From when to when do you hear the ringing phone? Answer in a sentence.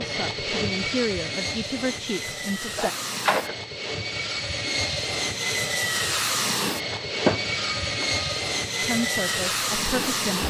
You can hear the ringing phone from 2.8 to 3.5 s and from 6.9 to 8.2 s.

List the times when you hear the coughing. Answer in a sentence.
You can't hear the coughing here.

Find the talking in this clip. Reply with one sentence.
You can hear the talking from 0.0 to 2.9 s and from 8.8 to 10.4 s.